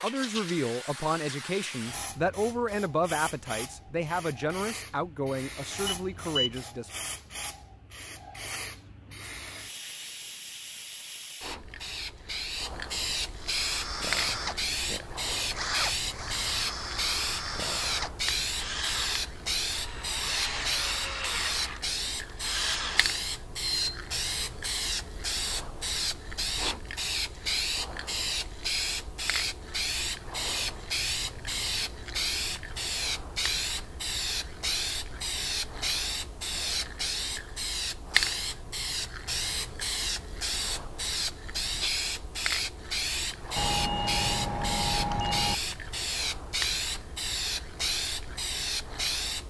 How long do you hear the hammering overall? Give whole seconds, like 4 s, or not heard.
not heard.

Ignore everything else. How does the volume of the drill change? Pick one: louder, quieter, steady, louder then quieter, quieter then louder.
steady.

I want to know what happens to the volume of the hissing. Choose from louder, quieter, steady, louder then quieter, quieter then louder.
louder.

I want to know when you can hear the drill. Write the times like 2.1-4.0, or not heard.
13.3-23.2.